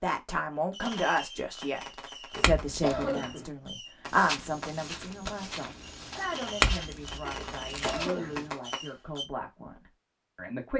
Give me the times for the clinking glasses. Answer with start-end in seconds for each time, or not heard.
2.4-3.1, 6.6-8.1.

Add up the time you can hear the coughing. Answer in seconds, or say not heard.
2 s.